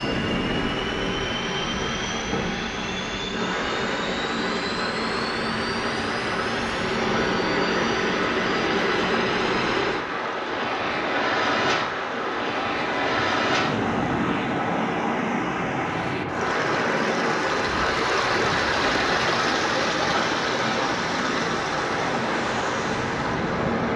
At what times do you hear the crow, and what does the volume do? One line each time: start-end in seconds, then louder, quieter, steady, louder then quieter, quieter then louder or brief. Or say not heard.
not heard.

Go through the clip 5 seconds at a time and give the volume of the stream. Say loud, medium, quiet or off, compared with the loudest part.
medium, medium, medium, loud, loud.